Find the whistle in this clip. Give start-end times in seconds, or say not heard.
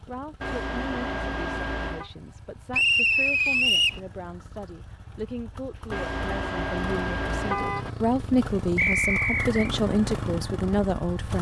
2.7-4.0, 8.8-9.7.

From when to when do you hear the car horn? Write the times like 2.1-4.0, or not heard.
0.4-2.1, 5.9-7.9.